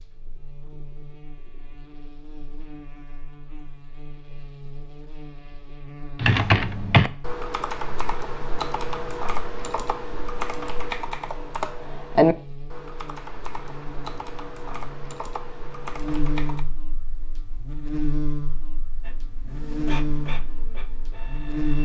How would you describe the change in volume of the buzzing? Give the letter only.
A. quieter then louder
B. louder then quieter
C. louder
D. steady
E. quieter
C.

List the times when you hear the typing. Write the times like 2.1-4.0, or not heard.
6.2-16.6.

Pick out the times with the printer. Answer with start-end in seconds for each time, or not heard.
19.0-21.8.